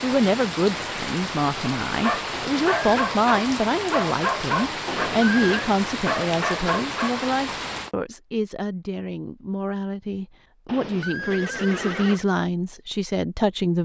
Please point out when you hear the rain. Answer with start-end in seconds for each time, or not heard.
0.0-7.9.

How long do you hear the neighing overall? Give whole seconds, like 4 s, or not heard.
3 s.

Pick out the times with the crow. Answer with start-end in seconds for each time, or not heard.
not heard.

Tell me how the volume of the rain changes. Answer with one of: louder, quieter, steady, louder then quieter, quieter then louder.
steady.